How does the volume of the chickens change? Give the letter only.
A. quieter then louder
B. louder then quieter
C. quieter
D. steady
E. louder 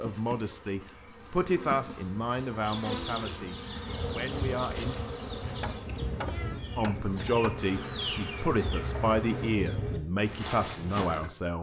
E.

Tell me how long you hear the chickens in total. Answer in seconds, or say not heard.
9 s.